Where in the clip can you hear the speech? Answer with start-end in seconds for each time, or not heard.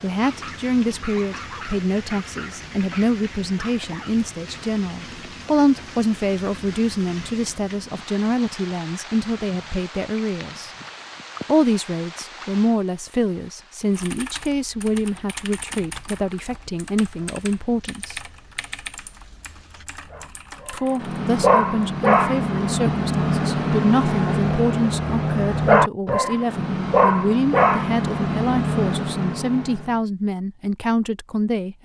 0.0-10.7, 11.4-18.2, 20.7-31.8.